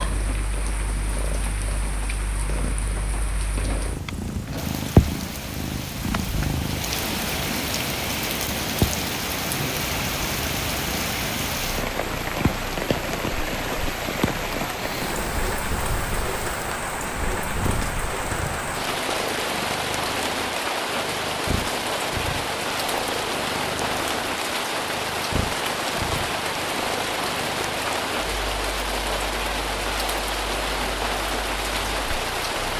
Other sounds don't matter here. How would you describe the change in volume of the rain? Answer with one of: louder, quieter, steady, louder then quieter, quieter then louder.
louder.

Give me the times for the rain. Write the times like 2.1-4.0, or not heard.
0.0-32.7.